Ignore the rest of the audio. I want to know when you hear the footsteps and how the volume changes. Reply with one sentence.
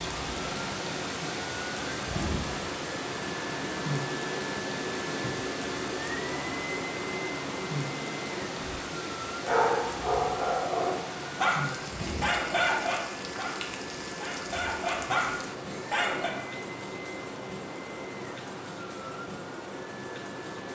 You can't hear the footsteps here.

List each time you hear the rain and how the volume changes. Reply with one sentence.
You can hear the rain from 0.0 to 20.6 s, getting quieter.